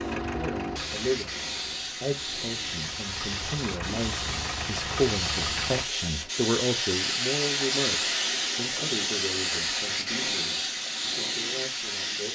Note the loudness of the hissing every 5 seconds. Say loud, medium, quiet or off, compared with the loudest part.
medium, loud, loud.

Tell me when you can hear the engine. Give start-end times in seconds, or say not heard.
0.0-5.8.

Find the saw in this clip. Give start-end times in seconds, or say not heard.
not heard.